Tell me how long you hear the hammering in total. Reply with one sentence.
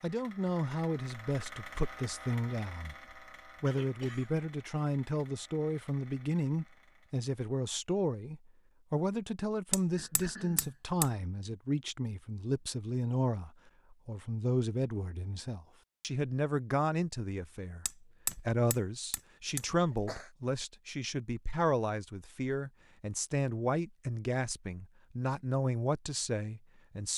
You can hear the hammering for 3 seconds altogether.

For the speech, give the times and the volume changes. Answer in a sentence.
You can hear the speech briefly from 0.0 to 3.0 s; and from 3.6 to 27.1 s, at a steady volume.